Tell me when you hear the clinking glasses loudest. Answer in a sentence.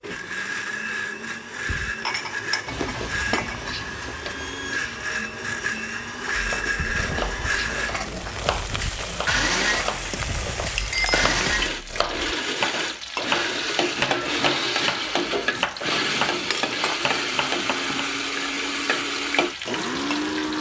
The volume of the clinking glasses peaks at 11 seconds.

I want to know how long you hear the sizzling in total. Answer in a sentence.
You can hear the sizzling for 18 seconds altogether.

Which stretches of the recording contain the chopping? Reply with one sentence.
The chopping can be heard from 6.3 to 17.9 s.